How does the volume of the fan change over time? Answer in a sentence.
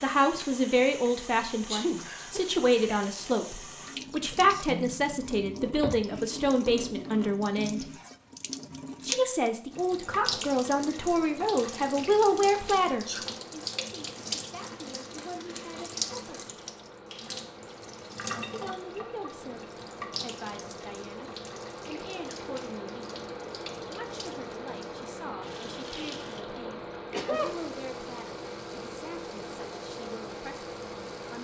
The loudness of the fan goes up.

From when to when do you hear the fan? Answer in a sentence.
You can hear the fan from 10.0 to 31.3 s.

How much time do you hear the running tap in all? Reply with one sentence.
You can hear the running tap for 31 seconds altogether.